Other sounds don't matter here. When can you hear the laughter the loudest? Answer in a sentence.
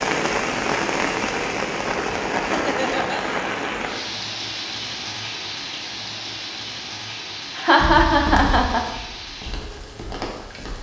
The volume of the laughter peaks at 8 seconds.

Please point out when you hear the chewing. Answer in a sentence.
You can't hear the chewing here.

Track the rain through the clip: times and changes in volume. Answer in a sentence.
You can hear the rain from 0.0 to 10.7 s, getting quieter.